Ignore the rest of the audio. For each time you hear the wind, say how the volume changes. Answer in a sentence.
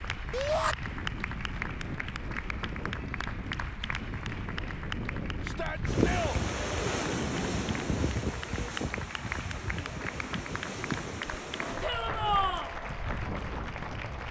You can hear the wind from 0.0 to 14.2 s, getting louder then quieter.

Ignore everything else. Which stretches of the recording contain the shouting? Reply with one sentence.
The shouting can be heard from 0.3 to 0.8 s, from 5.4 to 6.4 s and from 11.8 to 12.7 s.